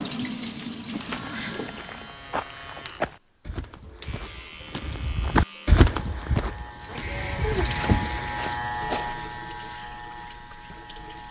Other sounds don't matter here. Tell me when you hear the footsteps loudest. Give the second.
6 s.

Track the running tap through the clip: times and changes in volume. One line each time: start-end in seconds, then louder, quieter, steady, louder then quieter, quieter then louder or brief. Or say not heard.
0.0-2.2 brief
6.7-11.2 quieter.